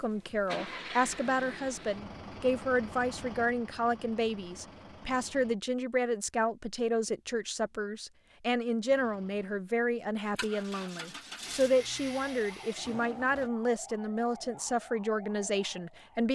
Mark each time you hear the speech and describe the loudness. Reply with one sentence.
You can hear the speech from 0.0 to 16.3 s, at a steady volume.